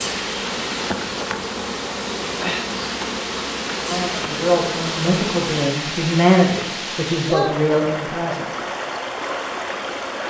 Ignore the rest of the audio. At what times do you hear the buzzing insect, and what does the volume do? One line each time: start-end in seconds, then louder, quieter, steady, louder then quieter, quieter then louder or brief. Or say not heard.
0.0-5.7 steady.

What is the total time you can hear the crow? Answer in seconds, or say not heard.
not heard.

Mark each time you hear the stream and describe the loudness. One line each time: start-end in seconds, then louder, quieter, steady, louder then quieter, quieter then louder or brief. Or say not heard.
0.0-10.2 steady.